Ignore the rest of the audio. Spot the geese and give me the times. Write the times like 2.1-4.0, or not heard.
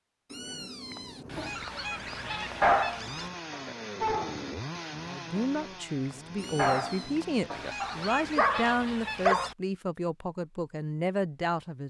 1.2-3.3, 7.5-9.6.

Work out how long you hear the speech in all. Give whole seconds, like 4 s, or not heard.
7 s.